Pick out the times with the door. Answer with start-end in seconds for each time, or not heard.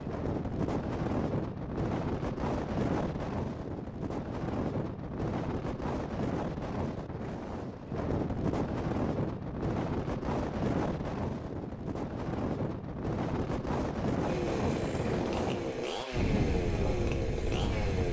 not heard.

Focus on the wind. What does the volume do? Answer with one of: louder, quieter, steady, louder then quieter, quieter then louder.
steady.